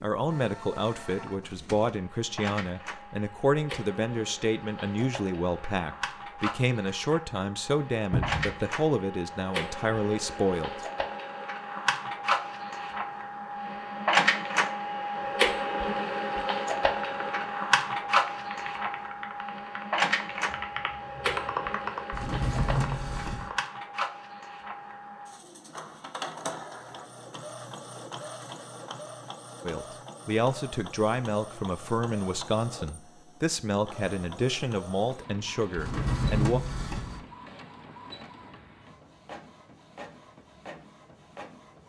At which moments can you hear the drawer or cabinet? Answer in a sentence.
You can hear the drawer or cabinet from 8.1 to 8.6 s, from 22.1 to 23.5 s and from 35.8 to 37.2 s.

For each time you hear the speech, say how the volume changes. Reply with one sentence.
You can hear the speech from 0.0 to 10.7 s, at a steady volume; and from 29.6 to 36.6 s, at a steady volume.